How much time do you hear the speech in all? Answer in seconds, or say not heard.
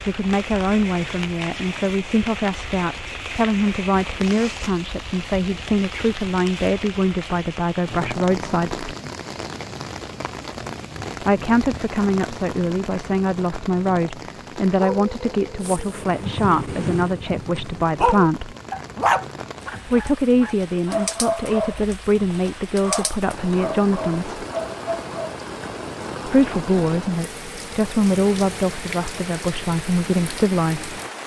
25 s.